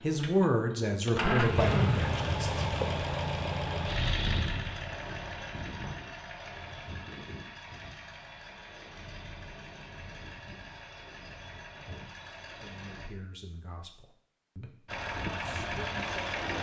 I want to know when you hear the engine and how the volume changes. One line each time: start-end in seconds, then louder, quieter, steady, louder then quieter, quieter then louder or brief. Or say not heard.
0.0-13.1 quieter
14.8-16.5 brief.